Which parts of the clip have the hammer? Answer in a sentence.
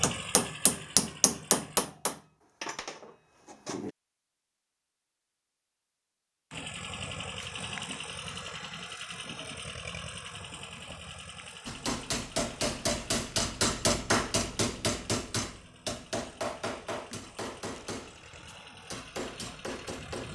The hammer can be heard from 0.0 to 3.9 s and from 11.7 to 20.3 s.